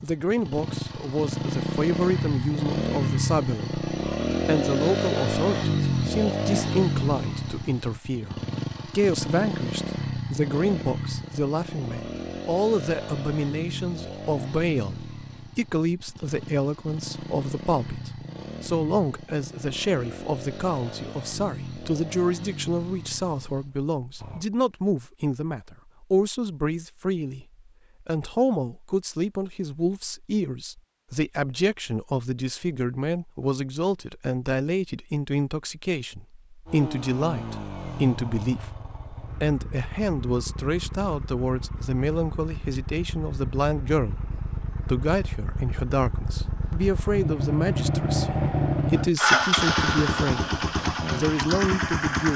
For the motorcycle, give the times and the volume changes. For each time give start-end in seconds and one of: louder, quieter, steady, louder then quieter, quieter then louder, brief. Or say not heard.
0.0-24.4 quieter
36.6-52.3 louder.